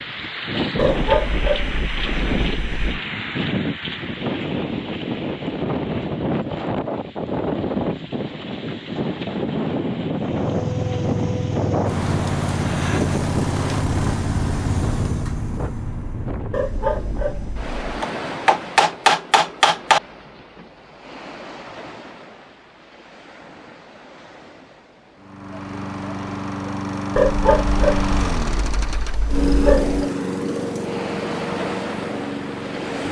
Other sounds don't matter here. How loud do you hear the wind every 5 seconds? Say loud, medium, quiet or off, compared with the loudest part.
loud, loud, loud, medium, quiet, quiet, medium.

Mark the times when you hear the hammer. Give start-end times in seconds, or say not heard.
18.0-20.0.